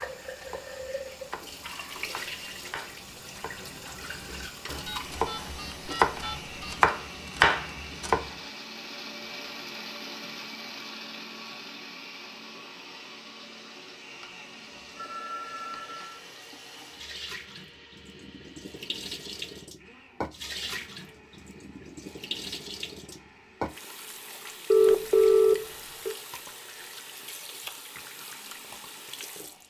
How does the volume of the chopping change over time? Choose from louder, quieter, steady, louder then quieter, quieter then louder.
louder.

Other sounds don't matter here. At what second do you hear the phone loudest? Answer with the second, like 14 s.
25 s.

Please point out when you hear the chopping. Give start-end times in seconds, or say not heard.
0.0-8.3.